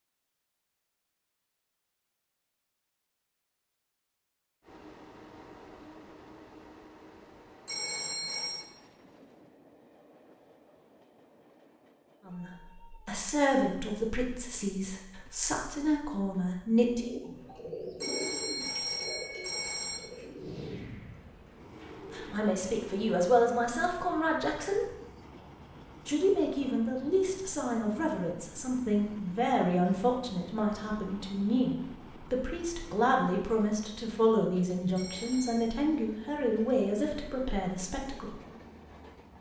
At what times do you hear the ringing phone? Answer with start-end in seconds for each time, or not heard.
7.7-8.7, 18.0-20.0, 35.0-35.7.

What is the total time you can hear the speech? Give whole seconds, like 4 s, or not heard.
20 s.